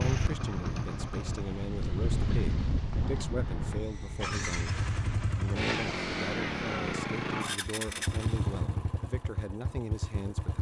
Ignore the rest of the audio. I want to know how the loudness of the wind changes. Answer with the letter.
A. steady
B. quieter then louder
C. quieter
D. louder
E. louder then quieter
E.